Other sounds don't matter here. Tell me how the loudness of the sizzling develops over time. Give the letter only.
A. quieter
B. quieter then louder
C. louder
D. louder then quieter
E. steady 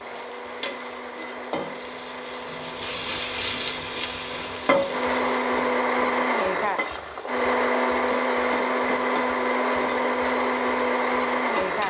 D.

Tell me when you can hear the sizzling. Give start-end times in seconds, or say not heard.
0.0-11.8.